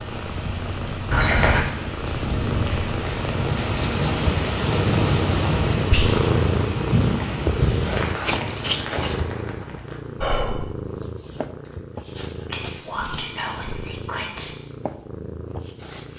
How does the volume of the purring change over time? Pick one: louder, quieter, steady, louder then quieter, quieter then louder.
louder then quieter.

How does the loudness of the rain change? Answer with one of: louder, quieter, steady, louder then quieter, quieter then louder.
louder then quieter.